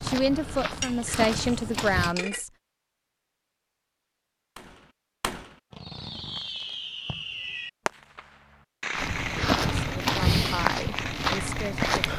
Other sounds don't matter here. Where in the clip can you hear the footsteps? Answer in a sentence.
You can hear the footsteps from 0.0 to 2.1 s and from 8.9 to 12.1 s.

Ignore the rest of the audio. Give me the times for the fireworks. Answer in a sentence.
You can hear the fireworks from 4.5 to 12.1 s.